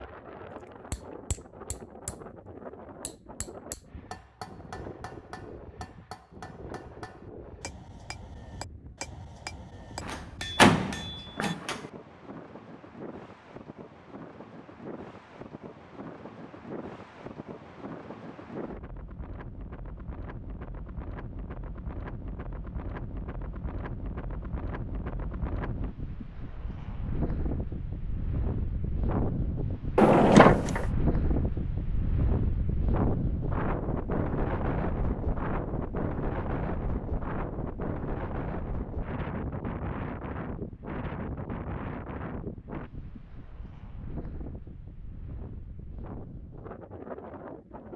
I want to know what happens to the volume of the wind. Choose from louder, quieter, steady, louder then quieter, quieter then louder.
louder then quieter.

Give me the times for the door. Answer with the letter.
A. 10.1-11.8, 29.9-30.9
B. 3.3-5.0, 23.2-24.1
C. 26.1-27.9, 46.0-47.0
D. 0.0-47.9
A.